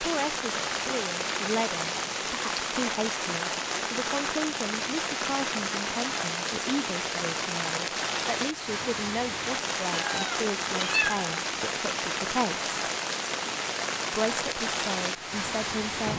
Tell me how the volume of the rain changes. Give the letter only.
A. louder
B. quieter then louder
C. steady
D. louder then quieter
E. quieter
C.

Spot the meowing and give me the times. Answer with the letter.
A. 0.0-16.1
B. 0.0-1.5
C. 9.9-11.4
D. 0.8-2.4
C.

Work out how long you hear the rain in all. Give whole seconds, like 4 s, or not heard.
16 s.